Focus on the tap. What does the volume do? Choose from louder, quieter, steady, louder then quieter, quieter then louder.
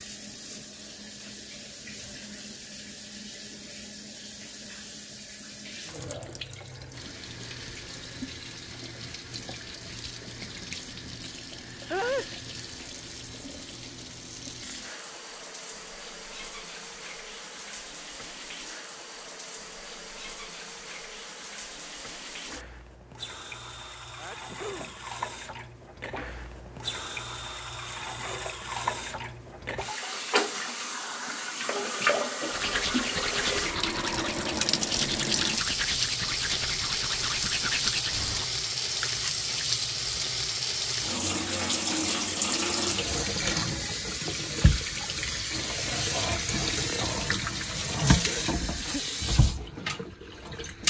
louder.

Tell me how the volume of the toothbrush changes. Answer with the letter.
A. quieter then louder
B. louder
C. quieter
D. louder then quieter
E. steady
E.